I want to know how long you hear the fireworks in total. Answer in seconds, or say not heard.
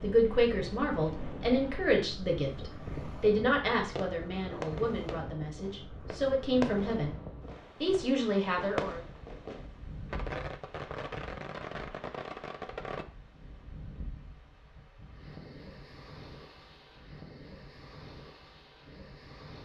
9 s.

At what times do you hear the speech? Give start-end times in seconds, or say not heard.
0.0-7.2, 7.8-9.0.